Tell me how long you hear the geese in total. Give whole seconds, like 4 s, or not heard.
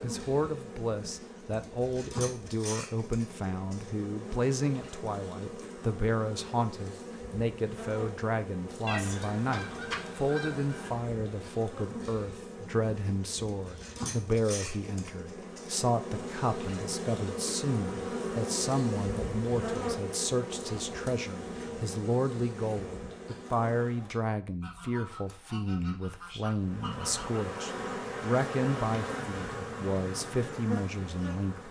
5 s.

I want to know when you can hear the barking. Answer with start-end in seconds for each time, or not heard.
not heard.